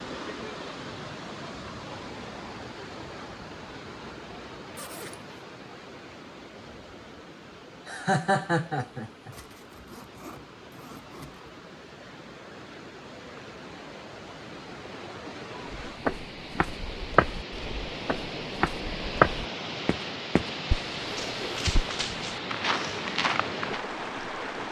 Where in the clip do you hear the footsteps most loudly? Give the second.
19 s.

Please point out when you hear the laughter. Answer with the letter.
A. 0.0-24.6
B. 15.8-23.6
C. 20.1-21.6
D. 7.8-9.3
D.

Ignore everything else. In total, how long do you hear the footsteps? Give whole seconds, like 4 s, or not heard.
8 s.